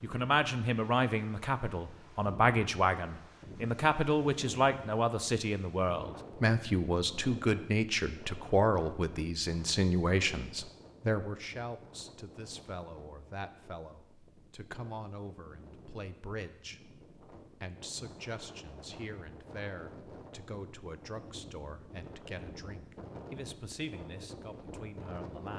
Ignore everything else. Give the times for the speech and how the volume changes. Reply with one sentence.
You can hear the speech from 0.0 to 25.5 s, getting quieter.